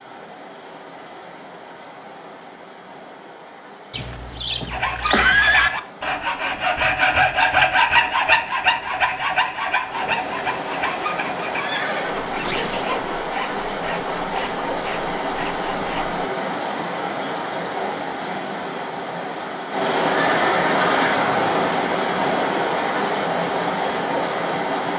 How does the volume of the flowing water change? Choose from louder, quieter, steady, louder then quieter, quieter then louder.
louder.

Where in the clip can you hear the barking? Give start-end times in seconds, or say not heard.
not heard.